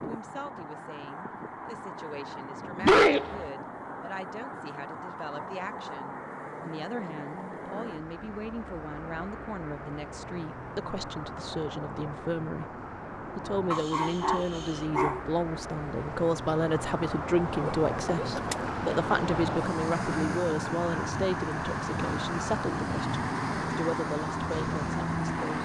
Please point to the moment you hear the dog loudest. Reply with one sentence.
The loudest moment of the dog is at 3 seconds.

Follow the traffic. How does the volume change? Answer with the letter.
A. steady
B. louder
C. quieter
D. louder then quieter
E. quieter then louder
B.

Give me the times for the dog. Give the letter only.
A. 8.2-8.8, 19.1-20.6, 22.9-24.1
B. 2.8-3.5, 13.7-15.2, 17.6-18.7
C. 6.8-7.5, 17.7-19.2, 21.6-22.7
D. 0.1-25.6
B.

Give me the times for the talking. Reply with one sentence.
You can hear the talking from 0.1 to 25.6 s.